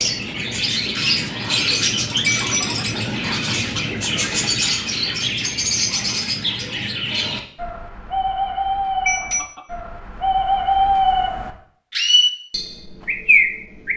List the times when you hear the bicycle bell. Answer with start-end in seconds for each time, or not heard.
2.2-2.9, 9.1-9.6.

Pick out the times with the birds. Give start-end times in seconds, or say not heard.
0.0-13.9.